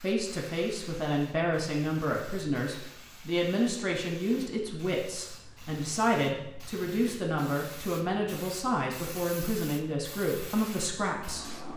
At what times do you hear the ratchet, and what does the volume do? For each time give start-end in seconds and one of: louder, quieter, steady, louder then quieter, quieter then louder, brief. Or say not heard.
not heard.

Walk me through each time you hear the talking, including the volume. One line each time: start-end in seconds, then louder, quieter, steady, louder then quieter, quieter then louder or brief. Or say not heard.
0.0-11.7 steady.